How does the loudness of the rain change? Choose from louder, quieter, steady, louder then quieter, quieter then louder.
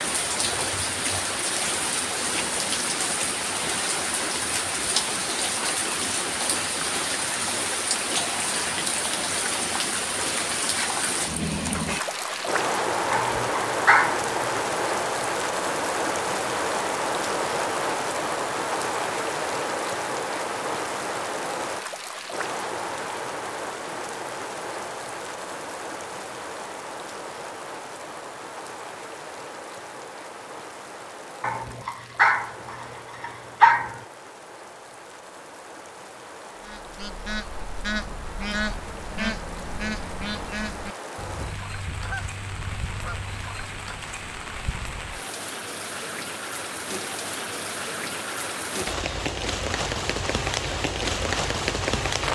quieter then louder.